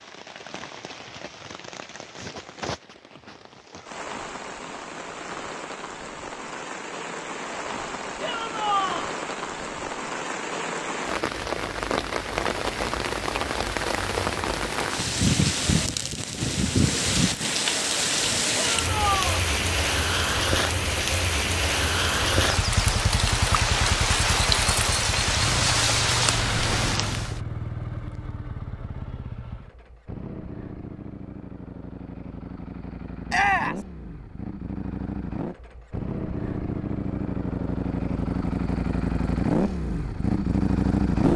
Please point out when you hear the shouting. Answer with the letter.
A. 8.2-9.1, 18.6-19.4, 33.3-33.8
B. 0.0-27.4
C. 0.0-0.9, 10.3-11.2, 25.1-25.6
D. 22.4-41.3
A.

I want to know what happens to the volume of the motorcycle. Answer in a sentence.
The loudness of the motorcycle goes down, then up.